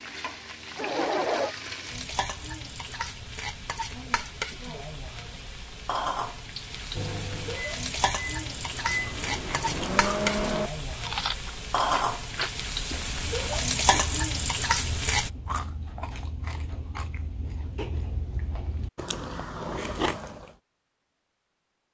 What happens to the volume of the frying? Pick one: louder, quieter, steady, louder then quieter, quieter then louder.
louder.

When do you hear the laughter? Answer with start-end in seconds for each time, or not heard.
0.8-1.6.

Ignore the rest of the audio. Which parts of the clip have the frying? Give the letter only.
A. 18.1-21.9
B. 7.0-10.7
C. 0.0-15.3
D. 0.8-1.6
C.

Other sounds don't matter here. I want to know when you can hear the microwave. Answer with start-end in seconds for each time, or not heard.
7.0-10.7.